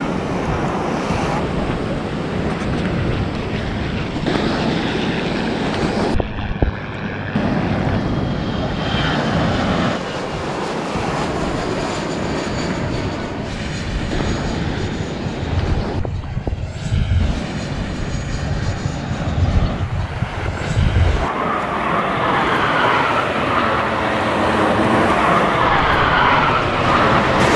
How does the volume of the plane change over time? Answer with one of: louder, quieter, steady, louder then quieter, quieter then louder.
louder.